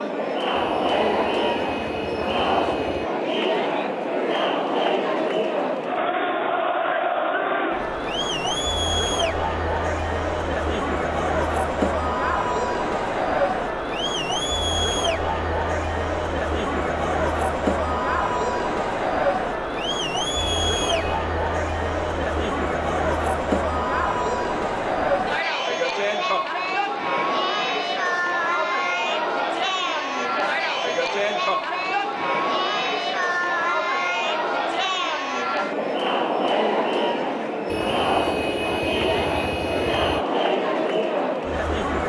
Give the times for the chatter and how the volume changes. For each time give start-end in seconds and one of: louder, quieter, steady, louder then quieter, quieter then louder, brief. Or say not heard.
0.0-42.0 steady.